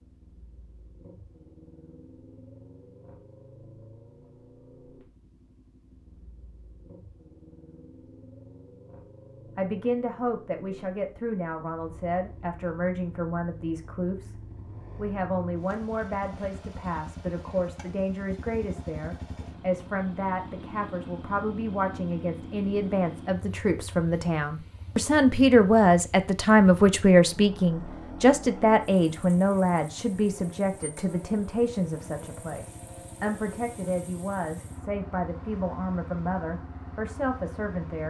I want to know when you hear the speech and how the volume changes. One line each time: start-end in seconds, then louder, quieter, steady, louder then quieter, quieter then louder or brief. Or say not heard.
9.6-38.0 louder then quieter.